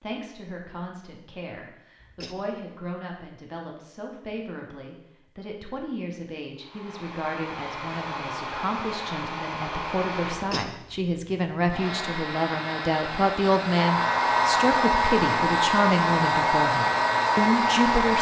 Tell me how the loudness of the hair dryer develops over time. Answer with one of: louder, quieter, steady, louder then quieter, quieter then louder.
louder.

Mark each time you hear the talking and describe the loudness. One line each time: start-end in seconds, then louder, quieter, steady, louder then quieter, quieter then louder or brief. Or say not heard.
0.0-18.1 louder.